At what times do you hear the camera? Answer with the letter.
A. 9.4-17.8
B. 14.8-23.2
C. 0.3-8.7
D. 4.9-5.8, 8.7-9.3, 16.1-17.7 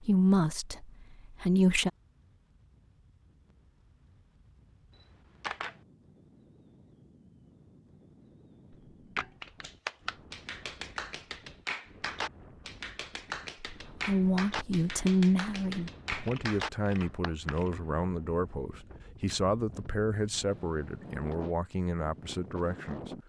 D.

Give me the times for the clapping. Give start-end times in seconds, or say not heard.
9.4-17.8.